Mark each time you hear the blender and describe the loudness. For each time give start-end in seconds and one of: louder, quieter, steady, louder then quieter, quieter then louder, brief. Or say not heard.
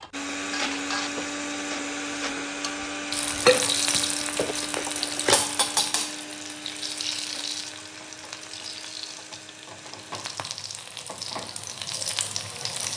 0.1-10.4 quieter.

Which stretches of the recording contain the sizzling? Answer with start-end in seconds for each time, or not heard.
3.1-12.9.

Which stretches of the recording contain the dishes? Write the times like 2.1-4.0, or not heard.
0.0-6.0.